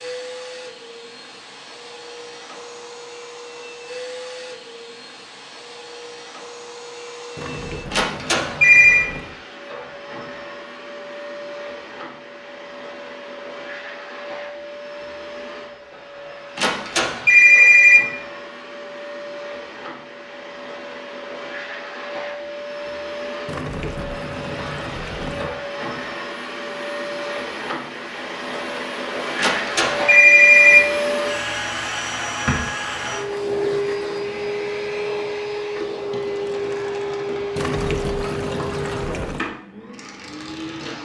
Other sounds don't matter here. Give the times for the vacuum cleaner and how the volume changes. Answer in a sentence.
The vacuum cleaner can be heard from 0.0 to 41.0 s, getting louder.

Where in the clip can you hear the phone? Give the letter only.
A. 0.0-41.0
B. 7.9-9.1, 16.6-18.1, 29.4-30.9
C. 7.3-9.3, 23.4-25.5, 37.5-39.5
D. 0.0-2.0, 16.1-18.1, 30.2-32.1
B.